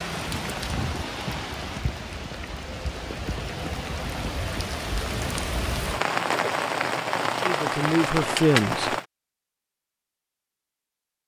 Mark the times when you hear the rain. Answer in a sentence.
The rain can be heard from 0.0 to 9.1 s.